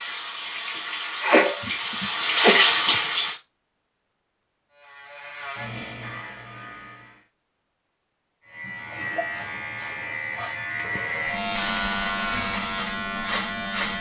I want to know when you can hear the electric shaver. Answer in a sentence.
You can hear the electric shaver from 4.7 to 7.2 s and from 8.4 to 13.9 s.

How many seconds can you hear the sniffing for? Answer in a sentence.
The sniffing can be heard for 3 seconds in total.